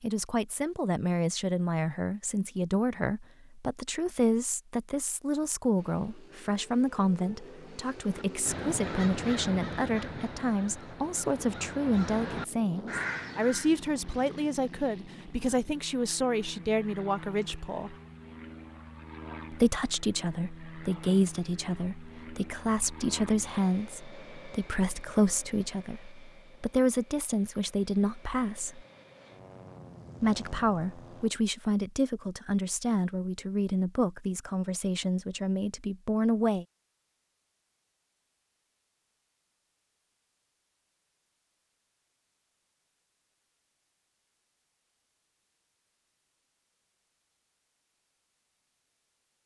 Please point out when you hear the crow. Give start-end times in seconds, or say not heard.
8.1-13.7.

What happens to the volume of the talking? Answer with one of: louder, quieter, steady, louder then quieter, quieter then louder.
steady.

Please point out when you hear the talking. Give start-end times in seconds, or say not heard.
0.0-17.9, 19.5-28.9, 30.2-36.6.